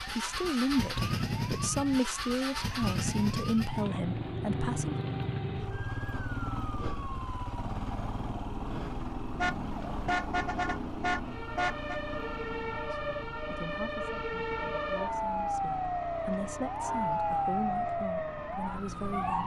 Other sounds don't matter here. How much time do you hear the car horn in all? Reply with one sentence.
You can hear the car horn for 3 seconds altogether.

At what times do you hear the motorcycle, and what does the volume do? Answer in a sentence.
You can hear the motorcycle from 0.0 to 19.4 s, getting quieter.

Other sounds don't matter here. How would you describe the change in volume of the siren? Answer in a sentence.
The volume of the siren goes up.